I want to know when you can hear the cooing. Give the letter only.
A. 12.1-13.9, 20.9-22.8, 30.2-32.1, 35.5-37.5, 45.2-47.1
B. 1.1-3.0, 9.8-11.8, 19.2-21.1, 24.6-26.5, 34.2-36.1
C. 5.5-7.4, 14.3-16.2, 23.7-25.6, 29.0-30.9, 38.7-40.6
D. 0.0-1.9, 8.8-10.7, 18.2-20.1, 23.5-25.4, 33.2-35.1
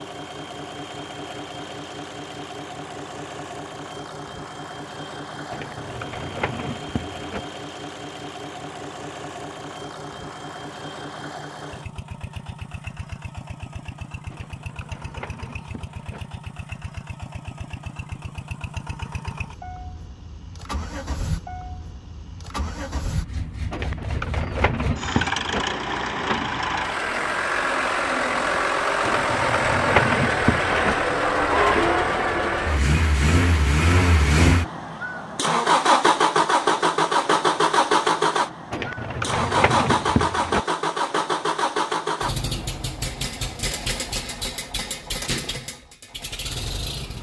C.